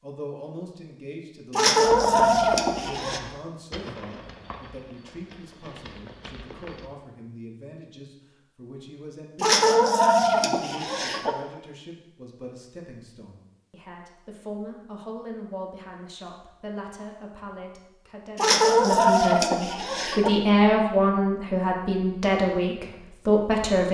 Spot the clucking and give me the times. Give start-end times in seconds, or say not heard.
1.5-3.2, 9.4-11.3, 18.4-20.3.